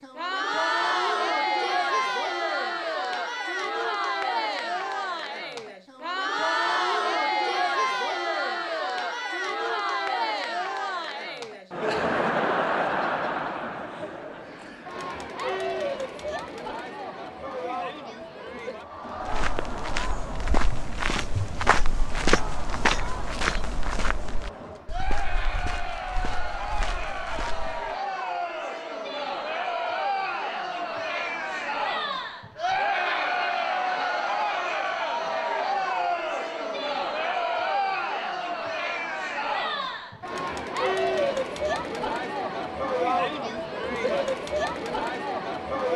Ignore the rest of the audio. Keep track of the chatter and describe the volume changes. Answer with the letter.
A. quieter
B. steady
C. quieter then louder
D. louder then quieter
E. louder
C.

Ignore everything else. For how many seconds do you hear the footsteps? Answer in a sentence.
The footsteps can be heard for 9 seconds in total.